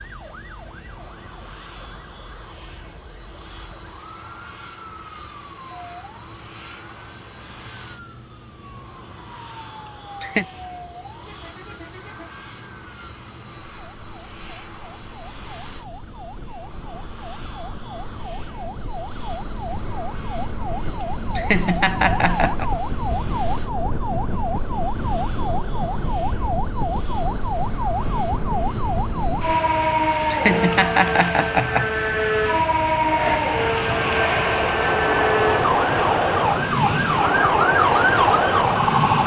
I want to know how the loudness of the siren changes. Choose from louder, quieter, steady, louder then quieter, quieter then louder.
louder.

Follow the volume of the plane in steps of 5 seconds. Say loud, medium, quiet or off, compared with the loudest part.
quiet, quiet, quiet, quiet, quiet, quiet, loud, loud.